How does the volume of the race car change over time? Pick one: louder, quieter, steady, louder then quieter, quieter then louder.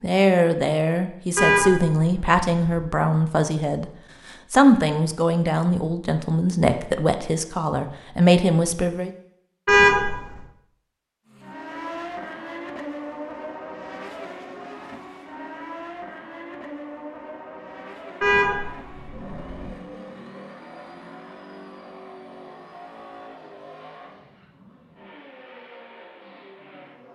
quieter.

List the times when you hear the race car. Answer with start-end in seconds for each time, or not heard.
11.2-27.1.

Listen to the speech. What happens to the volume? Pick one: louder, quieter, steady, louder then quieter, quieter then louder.
steady.